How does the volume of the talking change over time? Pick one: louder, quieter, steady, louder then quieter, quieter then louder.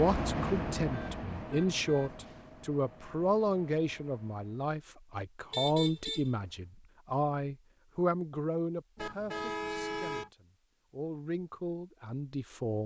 quieter.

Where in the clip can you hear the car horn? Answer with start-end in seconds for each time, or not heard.
0.9-2.1, 5.5-6.5, 8.9-10.3.